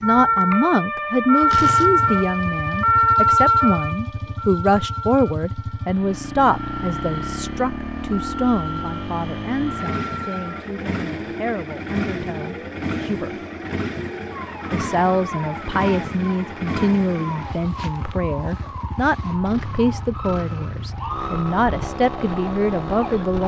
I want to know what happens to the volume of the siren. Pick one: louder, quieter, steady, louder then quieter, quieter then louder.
quieter.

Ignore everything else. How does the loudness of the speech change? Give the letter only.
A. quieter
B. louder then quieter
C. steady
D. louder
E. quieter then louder
E.